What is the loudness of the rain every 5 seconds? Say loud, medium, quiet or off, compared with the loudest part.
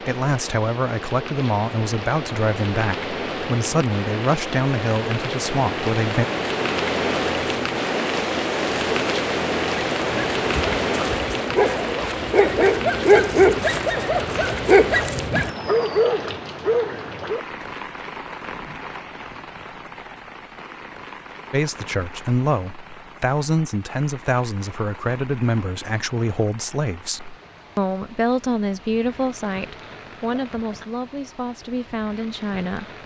medium, loud, loud, medium, quiet, quiet, quiet.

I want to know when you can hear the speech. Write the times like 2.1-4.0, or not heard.
0.0-6.2, 21.5-32.9.